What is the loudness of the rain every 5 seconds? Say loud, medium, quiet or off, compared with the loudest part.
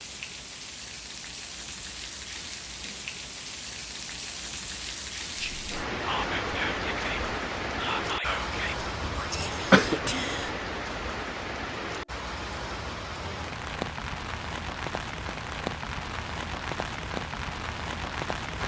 medium, loud, loud, loud.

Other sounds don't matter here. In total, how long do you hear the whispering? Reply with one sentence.
You can hear the whispering for 5 seconds altogether.